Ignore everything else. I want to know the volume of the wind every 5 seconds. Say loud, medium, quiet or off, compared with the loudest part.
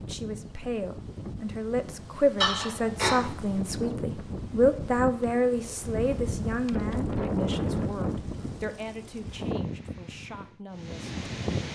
medium, loud, loud.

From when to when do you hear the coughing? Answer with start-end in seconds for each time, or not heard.
2.4-3.3.